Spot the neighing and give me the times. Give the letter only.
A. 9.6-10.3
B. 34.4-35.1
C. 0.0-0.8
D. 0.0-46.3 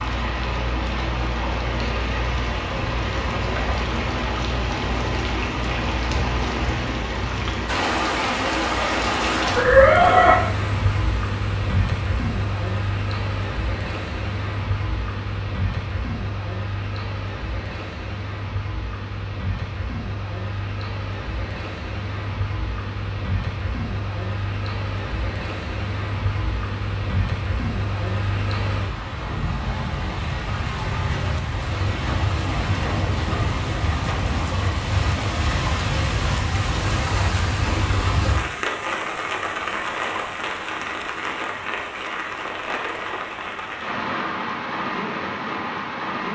A.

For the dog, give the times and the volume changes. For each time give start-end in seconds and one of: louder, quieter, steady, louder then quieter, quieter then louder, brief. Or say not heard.
not heard.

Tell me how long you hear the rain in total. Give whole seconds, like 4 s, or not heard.
46 s.